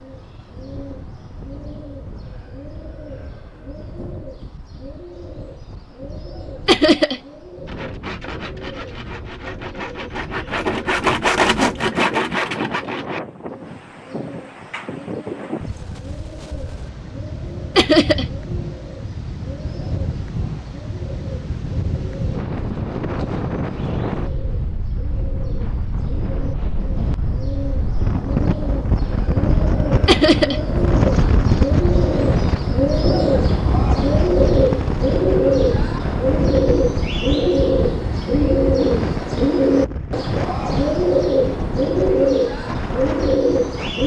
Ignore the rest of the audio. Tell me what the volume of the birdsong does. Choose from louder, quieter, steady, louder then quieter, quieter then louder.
louder.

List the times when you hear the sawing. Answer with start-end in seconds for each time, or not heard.
7.7-13.2.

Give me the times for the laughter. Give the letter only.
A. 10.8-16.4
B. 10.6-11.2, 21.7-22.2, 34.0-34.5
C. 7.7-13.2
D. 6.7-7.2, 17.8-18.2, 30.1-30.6
D.